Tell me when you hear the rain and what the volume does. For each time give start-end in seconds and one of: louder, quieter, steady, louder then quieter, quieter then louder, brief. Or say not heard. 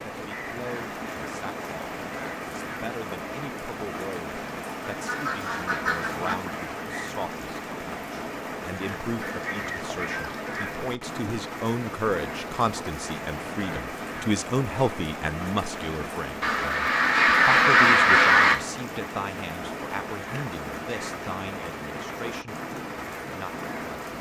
0.0-24.1 steady.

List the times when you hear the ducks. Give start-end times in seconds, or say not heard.
5.0-6.3, 9.2-10.8, 16.4-18.6.